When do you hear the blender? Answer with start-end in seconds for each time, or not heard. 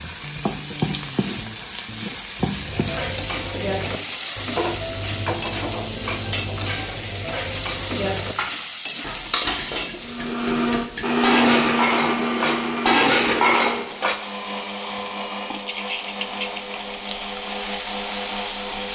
9.9-18.9.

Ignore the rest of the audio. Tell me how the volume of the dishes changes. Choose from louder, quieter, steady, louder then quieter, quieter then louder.
louder.